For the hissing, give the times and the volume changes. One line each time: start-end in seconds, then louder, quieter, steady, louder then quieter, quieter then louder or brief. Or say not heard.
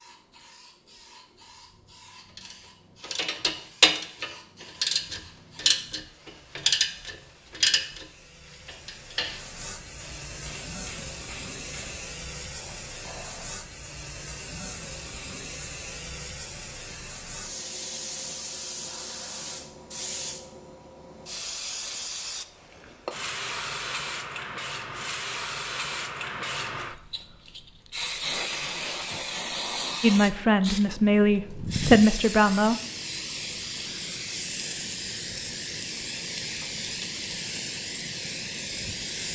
0.0-39.2 louder.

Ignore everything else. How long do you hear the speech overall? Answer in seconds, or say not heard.
3 s.